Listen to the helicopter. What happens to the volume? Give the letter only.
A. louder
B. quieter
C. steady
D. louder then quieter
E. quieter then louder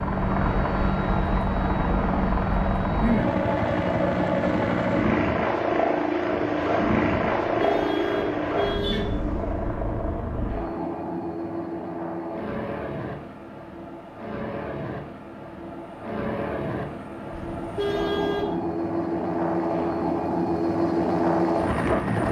E.